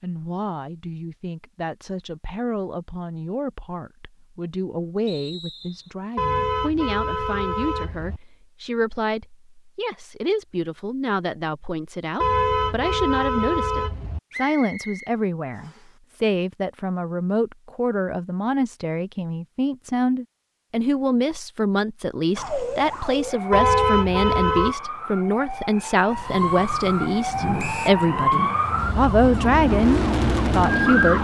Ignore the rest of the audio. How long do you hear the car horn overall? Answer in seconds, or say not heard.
5 s.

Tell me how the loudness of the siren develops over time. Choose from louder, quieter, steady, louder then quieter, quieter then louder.
louder then quieter.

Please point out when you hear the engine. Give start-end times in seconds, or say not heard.
26.1-31.1.